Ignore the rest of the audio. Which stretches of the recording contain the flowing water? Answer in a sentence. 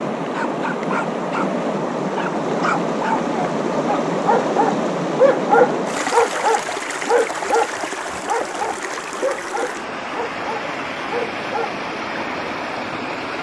The flowing water can be heard from 0.0 to 13.3 s.